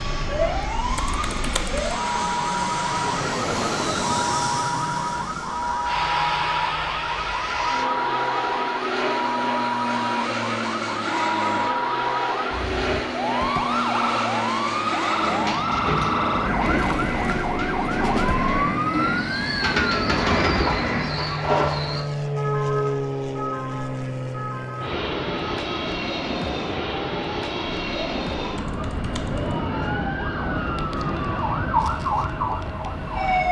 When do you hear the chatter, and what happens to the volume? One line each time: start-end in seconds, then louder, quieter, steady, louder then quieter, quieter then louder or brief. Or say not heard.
not heard.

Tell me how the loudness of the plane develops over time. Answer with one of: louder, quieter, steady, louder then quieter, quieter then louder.
steady.